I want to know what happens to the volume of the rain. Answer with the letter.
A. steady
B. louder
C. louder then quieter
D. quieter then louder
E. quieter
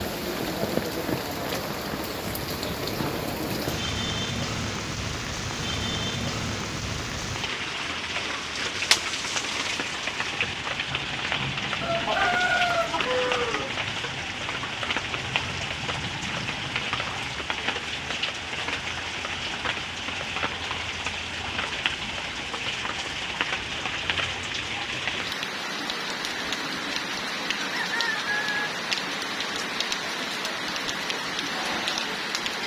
A.